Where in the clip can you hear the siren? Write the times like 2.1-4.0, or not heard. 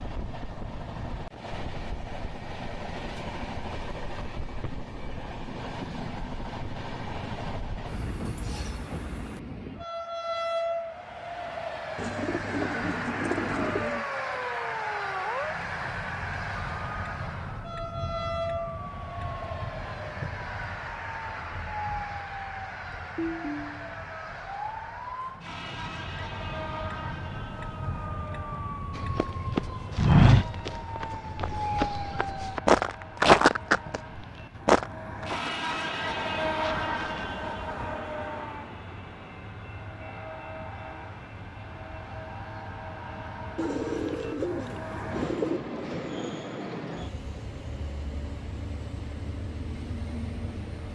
13.4-32.6.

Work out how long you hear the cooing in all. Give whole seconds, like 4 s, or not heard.
4 s.